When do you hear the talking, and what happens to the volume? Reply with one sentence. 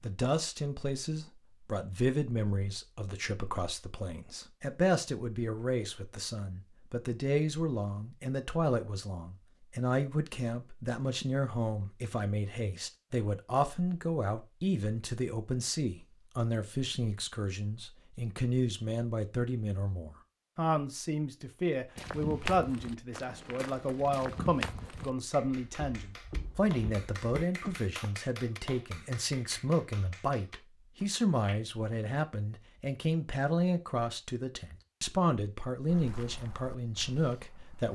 The talking can be heard from 0.0 to 37.8 s, at a steady volume.